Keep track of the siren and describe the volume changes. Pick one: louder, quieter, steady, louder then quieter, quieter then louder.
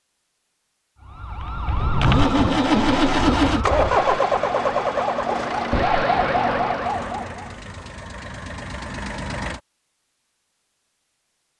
quieter then louder.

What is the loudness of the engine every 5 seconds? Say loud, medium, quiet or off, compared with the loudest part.
loud, quiet, off.